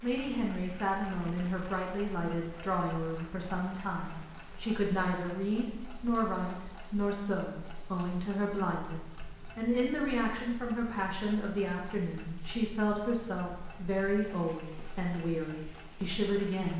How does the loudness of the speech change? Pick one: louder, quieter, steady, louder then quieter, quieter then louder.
steady.